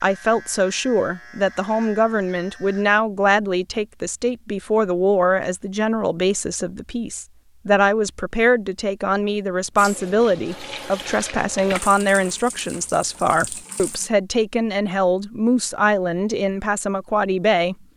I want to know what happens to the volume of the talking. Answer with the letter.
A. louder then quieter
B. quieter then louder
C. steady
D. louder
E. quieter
C.